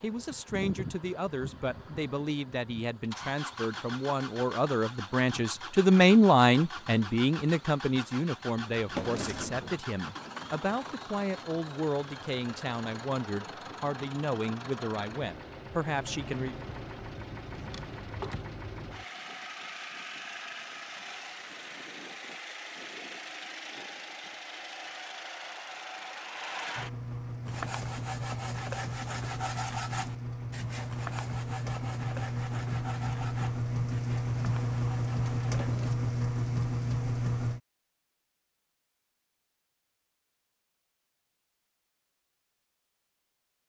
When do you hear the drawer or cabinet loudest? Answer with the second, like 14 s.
9 s.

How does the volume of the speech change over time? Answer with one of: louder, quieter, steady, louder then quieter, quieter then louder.
louder then quieter.